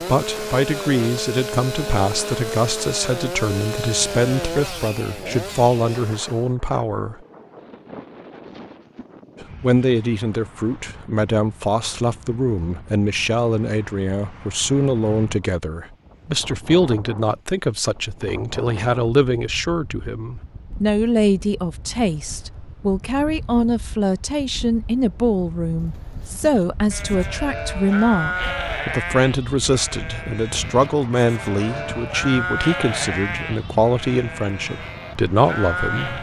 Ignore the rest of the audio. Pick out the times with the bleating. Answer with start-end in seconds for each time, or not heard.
26.2-36.1.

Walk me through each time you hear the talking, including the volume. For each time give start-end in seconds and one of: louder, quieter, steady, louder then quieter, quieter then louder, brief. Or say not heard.
0.1-7.2 steady
9.4-36.1 steady.